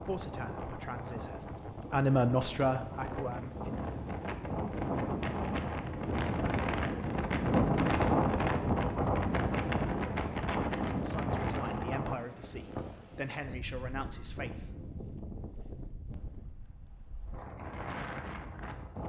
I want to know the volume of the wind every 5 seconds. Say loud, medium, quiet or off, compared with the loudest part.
medium, loud, medium, quiet.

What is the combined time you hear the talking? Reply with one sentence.
You can hear the talking for 8 seconds altogether.